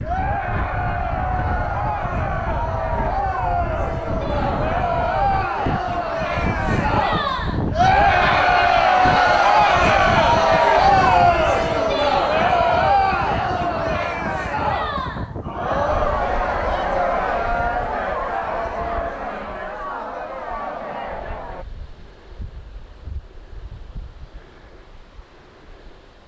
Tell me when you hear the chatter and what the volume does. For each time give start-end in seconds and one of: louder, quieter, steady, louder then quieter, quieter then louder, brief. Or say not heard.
0.0-21.6 louder then quieter.